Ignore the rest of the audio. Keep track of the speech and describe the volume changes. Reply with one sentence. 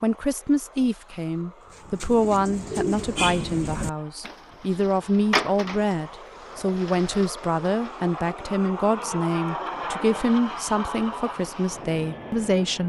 The loudness of the speech stays about the same.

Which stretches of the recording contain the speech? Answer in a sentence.
You can hear the speech from 0.0 to 12.8 s.